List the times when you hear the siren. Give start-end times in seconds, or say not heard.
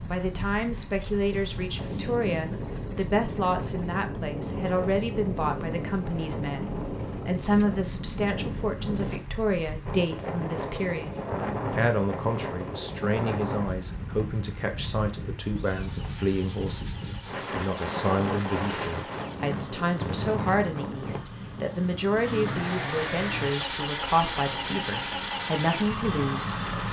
not heard.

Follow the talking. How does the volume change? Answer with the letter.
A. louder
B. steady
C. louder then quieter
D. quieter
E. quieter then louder
B.